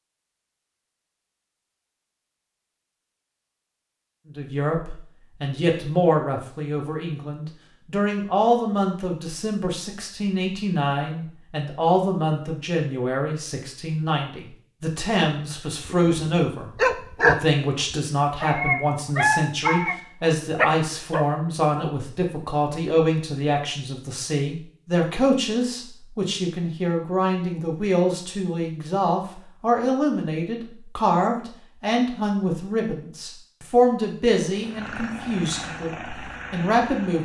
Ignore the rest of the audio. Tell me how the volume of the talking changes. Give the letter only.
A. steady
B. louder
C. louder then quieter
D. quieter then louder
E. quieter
A.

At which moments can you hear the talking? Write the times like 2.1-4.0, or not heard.
4.2-37.2.